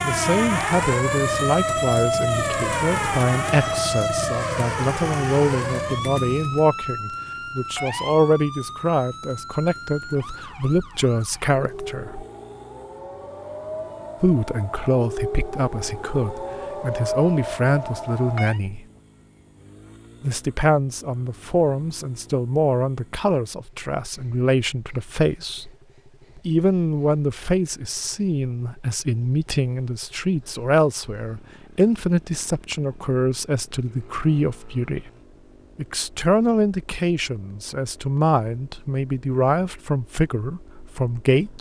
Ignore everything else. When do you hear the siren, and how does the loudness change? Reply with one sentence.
The siren can be heard from 0.0 to 18.6 s, getting quieter then louder.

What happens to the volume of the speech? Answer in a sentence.
The loudness of the speech stays about the same.